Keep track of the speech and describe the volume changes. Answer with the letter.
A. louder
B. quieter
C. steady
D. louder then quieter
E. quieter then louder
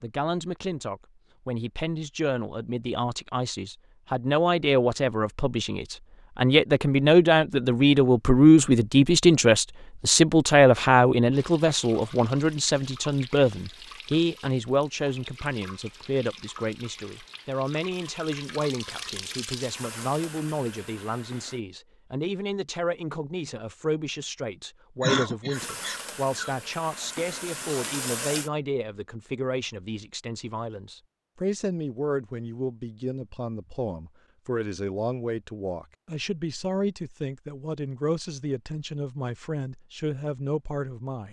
B.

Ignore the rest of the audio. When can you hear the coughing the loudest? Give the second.
25 s.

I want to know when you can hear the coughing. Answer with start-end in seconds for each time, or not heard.
25.0-26.6.